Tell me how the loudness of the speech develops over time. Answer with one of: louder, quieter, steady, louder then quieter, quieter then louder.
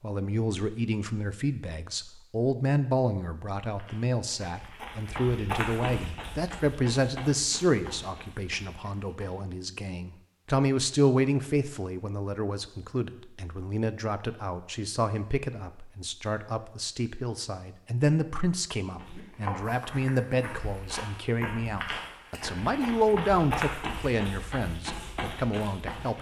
steady.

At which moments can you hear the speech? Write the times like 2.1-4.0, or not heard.
0.0-26.1.